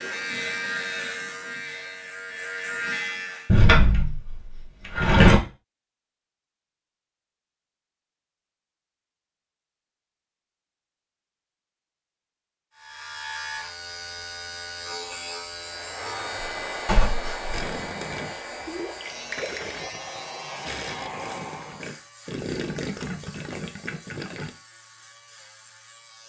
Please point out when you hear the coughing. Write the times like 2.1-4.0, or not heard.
not heard.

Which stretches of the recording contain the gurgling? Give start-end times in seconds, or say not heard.
17.5-24.5.